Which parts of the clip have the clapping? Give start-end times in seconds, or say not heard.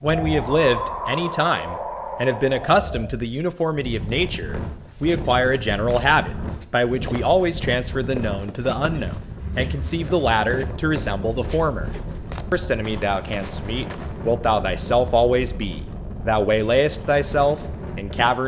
not heard.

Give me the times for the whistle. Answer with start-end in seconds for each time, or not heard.
not heard.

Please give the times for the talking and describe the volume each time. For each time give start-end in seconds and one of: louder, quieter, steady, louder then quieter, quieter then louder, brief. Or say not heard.
0.0-11.9 steady
12.5-18.4 louder.